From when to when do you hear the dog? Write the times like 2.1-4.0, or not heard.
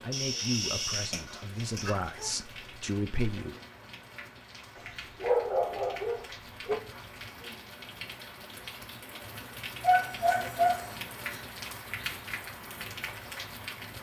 0.1-2.4, 5.2-6.8, 9.8-11.4.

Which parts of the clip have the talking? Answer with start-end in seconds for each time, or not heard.
0.0-3.5.